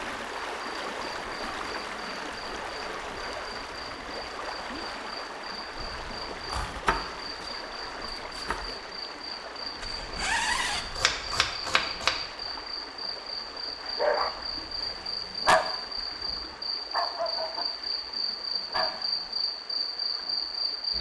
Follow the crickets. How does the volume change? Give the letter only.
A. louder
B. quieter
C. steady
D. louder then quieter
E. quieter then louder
A.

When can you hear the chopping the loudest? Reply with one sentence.
The loudest moment of the chopping is at 12 seconds.